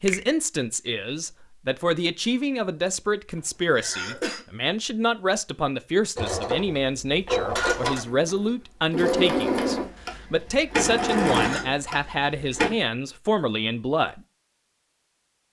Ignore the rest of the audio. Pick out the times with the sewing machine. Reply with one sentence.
You can hear the sewing machine from 6.2 to 12.7 s.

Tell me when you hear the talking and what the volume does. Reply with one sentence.
You can hear the talking from 0.0 to 14.2 s, at a steady volume.